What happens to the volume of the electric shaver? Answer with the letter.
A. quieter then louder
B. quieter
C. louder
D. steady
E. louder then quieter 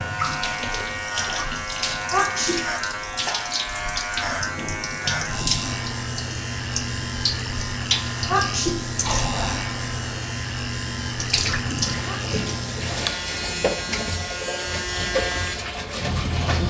D.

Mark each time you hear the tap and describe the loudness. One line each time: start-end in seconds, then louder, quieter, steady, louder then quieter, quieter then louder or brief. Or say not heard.
0.0-16.6 steady.